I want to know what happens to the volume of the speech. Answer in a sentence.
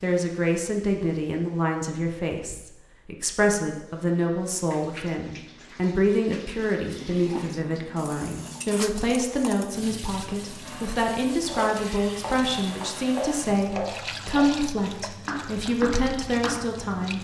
The volume of the speech stays about the same.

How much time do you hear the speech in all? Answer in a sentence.
You can hear the speech for 17 seconds altogether.